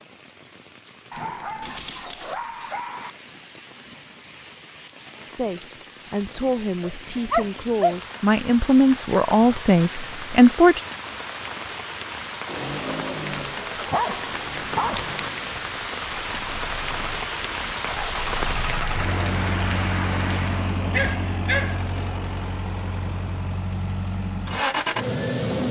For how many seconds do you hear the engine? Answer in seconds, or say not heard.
13 s.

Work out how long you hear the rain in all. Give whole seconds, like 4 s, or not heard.
21 s.